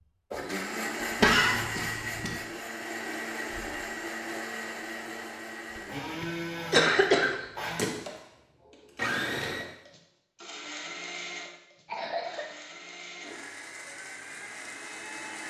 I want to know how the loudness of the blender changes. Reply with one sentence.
The loudness of the blender goes down.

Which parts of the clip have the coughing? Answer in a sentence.
You can hear the coughing from 1.2 to 2.4 s, from 6.2 to 7.9 s and from 11.8 to 12.6 s.